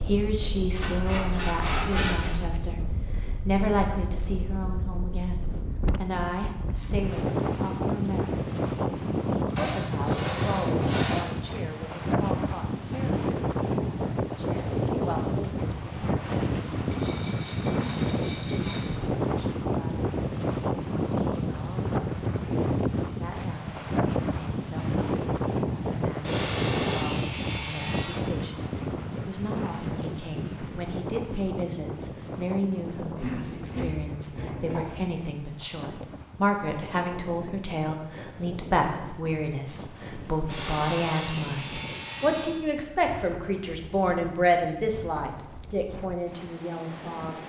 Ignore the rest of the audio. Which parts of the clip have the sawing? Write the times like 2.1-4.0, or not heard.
0.7-2.4, 9.6-11.4, 16.9-18.9, 26.2-28.1, 33.1-35.1, 40.5-42.5.